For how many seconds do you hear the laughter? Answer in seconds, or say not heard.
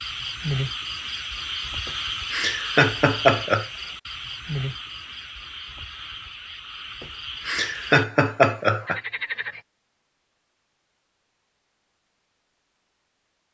4 s.